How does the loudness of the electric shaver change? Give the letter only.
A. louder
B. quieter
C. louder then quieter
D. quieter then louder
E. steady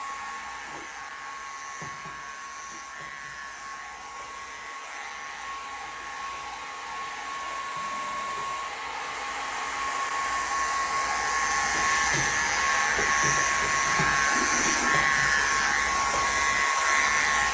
A.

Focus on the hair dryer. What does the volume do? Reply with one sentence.
The loudness of the hair dryer goes up.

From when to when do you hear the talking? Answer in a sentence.
You can't hear the talking here.